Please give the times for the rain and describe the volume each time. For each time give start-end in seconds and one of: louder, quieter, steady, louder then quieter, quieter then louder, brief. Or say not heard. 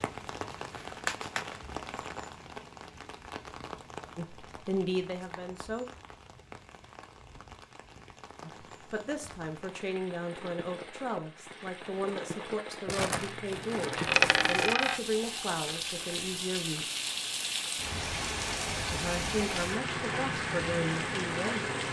0.0-21.8 quieter then louder.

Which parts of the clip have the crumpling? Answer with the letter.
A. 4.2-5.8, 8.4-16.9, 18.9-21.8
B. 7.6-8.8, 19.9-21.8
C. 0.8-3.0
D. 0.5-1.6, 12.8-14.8
D.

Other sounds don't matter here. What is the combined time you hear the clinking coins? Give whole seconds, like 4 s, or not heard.
2 s.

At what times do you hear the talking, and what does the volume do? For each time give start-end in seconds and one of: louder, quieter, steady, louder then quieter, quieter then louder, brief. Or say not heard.
4.2-5.8 brief
8.4-16.9 steady
18.9-21.8 brief.